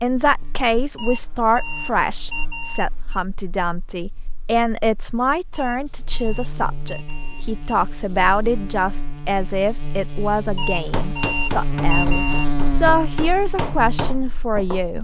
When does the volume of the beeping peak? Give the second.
12 s.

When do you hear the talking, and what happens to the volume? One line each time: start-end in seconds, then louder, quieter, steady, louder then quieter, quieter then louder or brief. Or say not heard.
0.0-14.9 steady.